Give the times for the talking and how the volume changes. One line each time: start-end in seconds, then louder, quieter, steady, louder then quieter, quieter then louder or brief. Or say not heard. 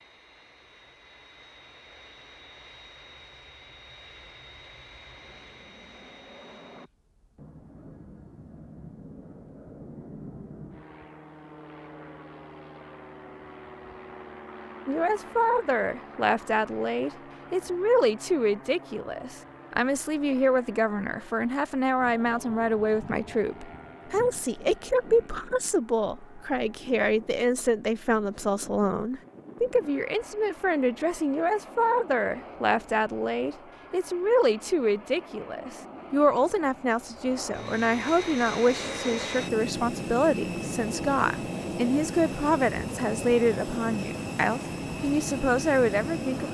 14.8-46.4 steady.